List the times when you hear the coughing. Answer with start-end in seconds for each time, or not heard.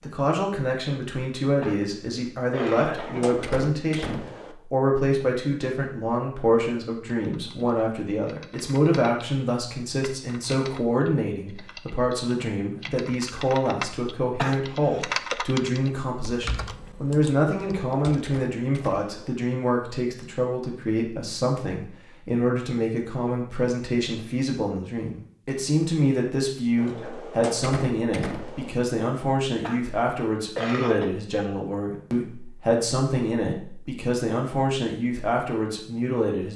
1.6-3.3, 14.3-15.3, 29.6-31.1.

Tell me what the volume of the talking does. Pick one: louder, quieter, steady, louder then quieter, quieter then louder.
steady.